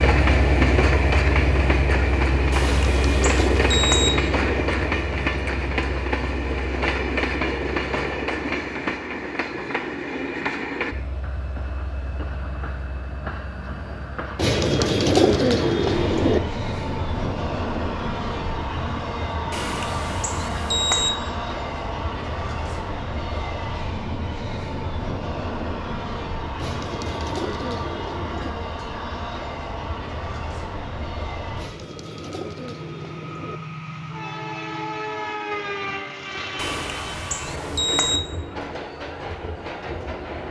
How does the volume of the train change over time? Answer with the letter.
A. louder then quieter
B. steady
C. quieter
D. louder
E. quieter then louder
C.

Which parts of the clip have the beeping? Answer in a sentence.
The beeping can be heard from 2.5 to 4.1 s, from 19.5 to 21.1 s and from 36.5 to 38.2 s.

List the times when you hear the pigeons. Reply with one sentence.
The pigeons can be heard from 2.6 to 4.7 s, from 14.3 to 16.4 s, from 26.6 to 28.6 s and from 31.6 to 33.6 s.